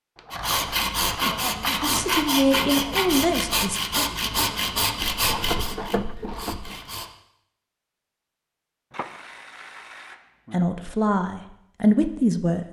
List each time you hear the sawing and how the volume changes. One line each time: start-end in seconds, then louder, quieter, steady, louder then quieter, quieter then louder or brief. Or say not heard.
0.3-7.1 quieter.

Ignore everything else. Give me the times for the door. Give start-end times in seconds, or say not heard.
not heard.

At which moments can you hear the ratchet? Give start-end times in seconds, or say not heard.
0.1-2.3, 5.0-6.8, 8.9-10.7.